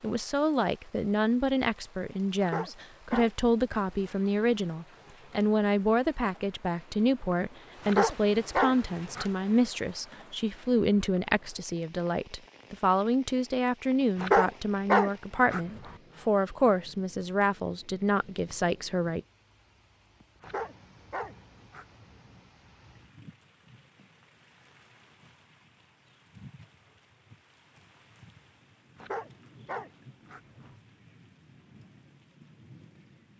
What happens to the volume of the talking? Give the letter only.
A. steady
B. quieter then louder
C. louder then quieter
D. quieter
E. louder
A.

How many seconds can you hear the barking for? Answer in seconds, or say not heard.
8 s.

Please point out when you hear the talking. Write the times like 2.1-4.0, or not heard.
0.0-19.2.